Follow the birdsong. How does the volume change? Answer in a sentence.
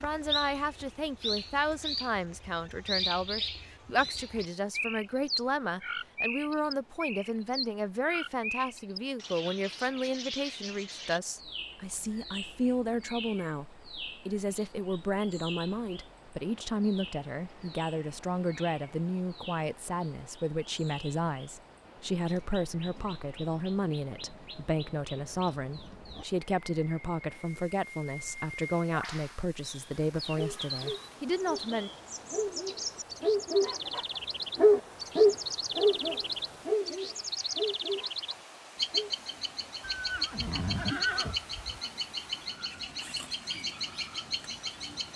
The loudness of the birdsong goes down, then up.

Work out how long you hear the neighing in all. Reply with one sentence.
You can hear the neighing for 2 seconds altogether.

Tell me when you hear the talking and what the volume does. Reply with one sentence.
You can hear the talking from 0.0 to 31.9 s, at a steady volume.